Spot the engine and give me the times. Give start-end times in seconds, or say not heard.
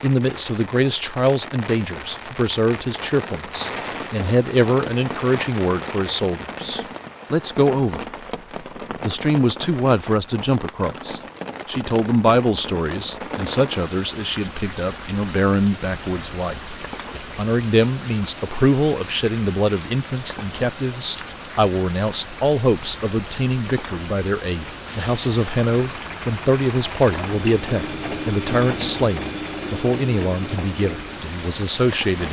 24.9-32.2.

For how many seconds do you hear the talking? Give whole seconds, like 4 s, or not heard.
31 s.